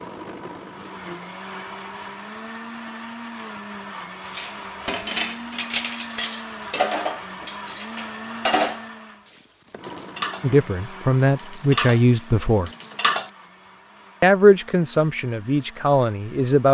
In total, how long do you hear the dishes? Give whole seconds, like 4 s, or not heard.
9 s.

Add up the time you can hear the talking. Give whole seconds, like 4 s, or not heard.
5 s.